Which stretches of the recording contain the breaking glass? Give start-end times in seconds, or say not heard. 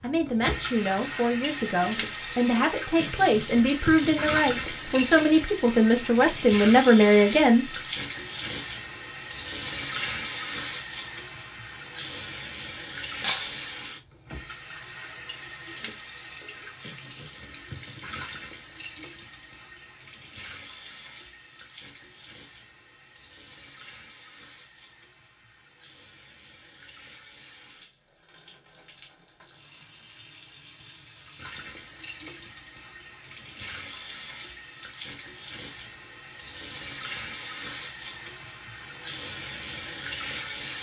13.2-13.8.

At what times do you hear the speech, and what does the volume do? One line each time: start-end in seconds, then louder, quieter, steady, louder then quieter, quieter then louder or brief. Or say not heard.
0.0-7.7 louder.